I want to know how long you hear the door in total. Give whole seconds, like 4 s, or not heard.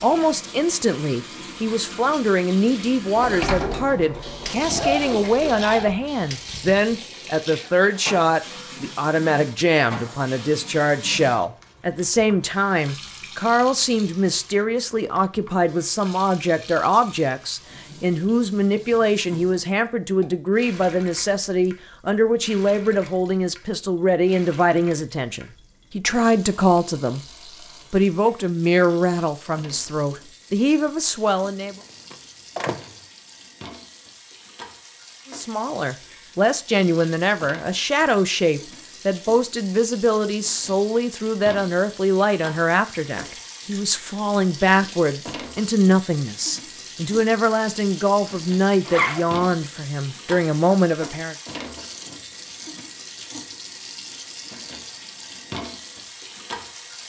4 s.